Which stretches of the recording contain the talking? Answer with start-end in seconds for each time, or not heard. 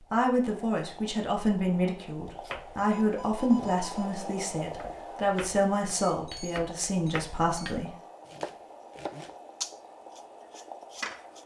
0.1-7.9.